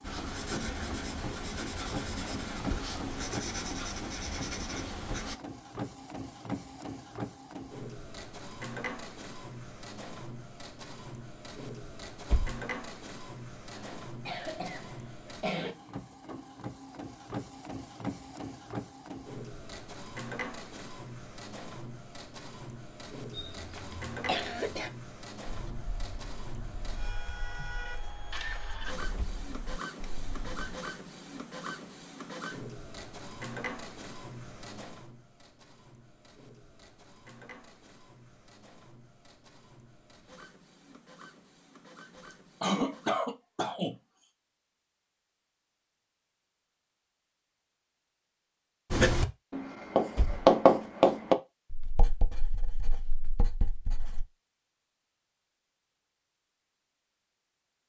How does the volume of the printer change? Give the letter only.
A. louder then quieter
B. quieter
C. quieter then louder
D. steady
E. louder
B.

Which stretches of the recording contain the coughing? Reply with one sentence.
The coughing can be heard from 13.7 to 15.8 s, from 23.3 to 24.9 s and from 42.6 to 44.0 s.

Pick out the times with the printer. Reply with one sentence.
The printer can be heard from 0.0 to 43.2 s.